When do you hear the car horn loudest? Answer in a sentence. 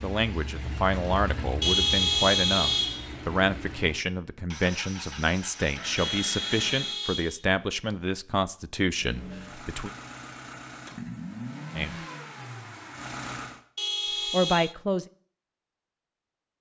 The volume of the car horn peaks at 2 seconds.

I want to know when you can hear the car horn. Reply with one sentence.
You can hear the car horn from 1.6 to 3.1 s, from 6.0 to 8.0 s and from 13.8 to 14.8 s.